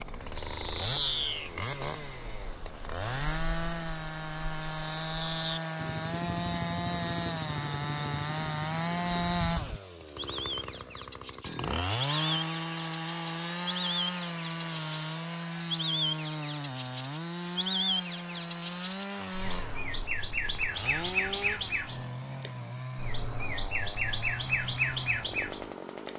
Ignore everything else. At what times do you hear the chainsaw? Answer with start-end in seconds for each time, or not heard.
0.0-26.1.